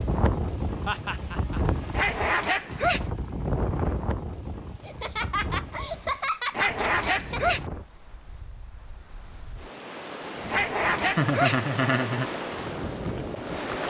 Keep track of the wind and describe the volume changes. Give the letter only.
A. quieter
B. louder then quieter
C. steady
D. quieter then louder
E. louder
D.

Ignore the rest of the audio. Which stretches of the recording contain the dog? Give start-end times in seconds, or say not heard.
1.9-3.0, 6.5-7.7, 10.4-11.7.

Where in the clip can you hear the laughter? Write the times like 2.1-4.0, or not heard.
0.8-1.6, 4.8-7.4, 11.2-12.3.